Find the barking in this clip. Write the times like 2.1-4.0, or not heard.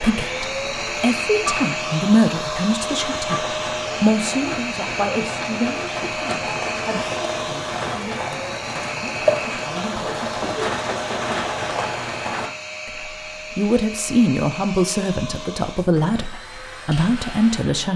not heard.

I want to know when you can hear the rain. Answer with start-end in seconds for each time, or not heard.
0.0-12.5.